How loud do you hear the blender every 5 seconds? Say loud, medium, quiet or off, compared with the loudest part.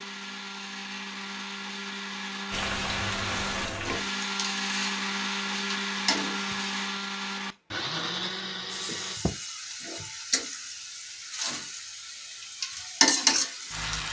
loud, loud, off.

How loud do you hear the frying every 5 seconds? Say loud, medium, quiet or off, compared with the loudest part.
medium, medium, loud.